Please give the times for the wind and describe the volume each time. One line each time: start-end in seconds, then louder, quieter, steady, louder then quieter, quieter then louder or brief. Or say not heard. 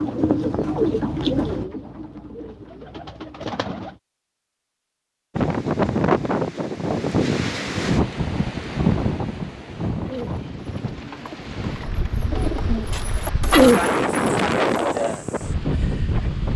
5.3-16.5 quieter then louder.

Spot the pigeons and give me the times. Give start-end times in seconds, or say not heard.
0.0-4.0, 10.1-15.2.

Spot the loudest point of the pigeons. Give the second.
14 s.